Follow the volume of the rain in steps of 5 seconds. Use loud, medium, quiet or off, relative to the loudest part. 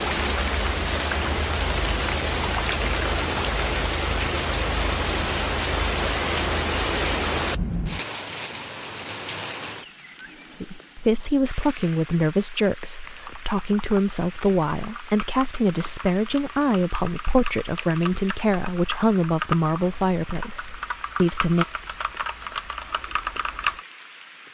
loud, loud, quiet, quiet, quiet.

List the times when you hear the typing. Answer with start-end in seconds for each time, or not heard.
13.1-23.8.